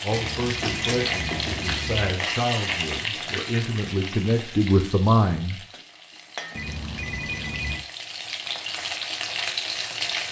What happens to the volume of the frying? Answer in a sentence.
The loudness of the frying goes down, then up.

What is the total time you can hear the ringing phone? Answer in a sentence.
You can hear the ringing phone for 3 seconds altogether.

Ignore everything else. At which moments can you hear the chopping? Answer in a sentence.
The chopping can't be heard in this clip.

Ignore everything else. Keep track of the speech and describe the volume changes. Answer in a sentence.
The loudness of the speech goes up.